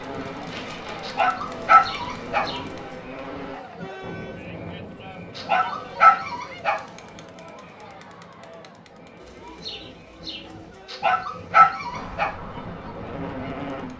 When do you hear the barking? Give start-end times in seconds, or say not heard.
1.0-2.5, 5.3-6.8, 10.9-12.3.